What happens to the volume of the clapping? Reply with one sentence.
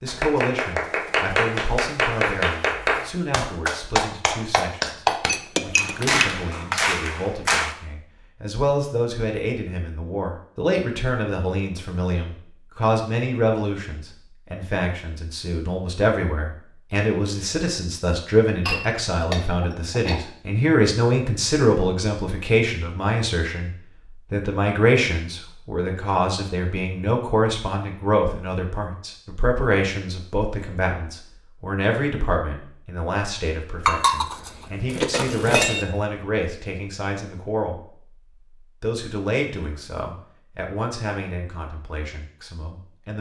The volume of the clapping stays about the same.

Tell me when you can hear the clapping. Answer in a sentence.
You can hear the clapping from 0.1 to 7.8 s.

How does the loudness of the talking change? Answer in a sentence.
The loudness of the talking goes up, then down.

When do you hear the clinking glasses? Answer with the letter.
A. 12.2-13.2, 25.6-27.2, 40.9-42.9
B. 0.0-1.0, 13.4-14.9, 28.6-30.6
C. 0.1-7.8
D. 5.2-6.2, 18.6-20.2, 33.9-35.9
D.